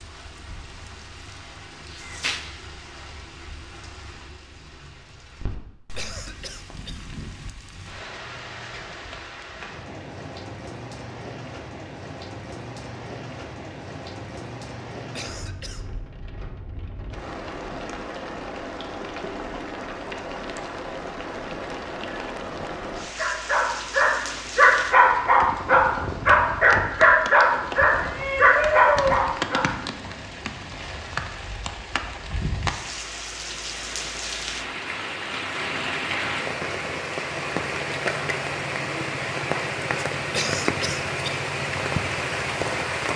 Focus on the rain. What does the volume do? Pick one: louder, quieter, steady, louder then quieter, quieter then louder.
louder.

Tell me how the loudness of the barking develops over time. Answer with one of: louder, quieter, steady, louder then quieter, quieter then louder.
steady.